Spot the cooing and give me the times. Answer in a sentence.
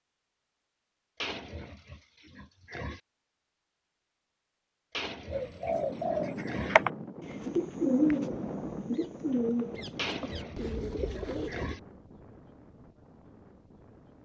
The cooing can be heard from 5.3 to 11.8 s.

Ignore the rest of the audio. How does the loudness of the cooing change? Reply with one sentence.
The loudness of the cooing goes down.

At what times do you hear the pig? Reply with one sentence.
You can hear the pig from 1.2 to 3.0 s, from 4.9 to 6.8 s and from 9.9 to 11.8 s.